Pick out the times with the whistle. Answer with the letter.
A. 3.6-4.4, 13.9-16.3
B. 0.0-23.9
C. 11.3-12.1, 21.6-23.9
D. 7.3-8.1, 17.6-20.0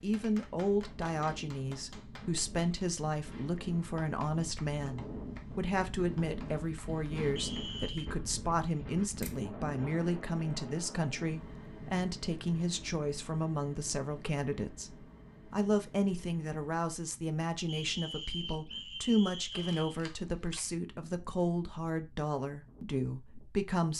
D.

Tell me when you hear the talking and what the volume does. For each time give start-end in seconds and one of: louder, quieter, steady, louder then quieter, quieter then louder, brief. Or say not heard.
0.0-23.9 steady.